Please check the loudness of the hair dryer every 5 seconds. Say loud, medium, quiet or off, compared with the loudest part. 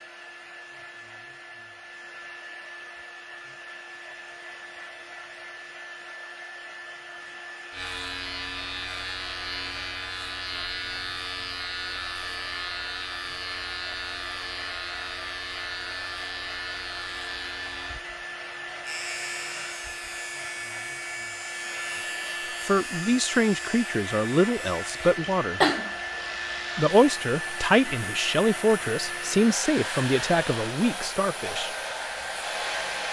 medium, medium, medium, medium, loud, loud, loud.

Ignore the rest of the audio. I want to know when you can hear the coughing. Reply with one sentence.
The coughing can be heard from 25.0 to 25.9 s.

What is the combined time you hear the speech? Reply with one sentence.
You can hear the speech for 8 seconds altogether.